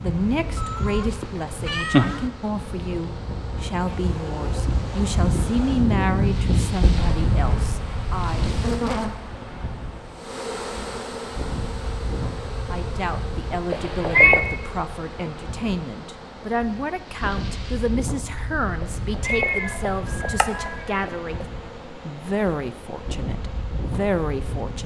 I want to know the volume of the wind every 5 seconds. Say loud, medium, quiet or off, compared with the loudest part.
medium, loud, medium, medium, medium.